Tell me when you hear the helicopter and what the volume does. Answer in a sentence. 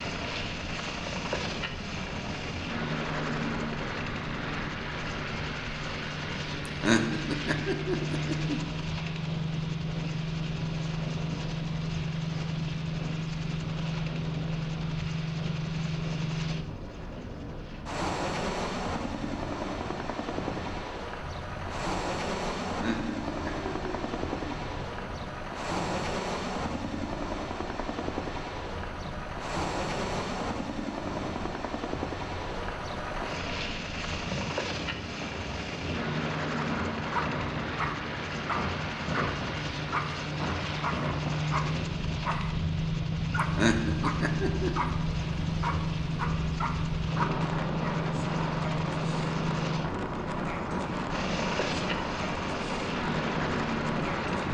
You can hear the helicopter from 0.0 to 54.4 s, at a steady volume.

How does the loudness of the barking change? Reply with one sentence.
The volume of the barking stays about the same.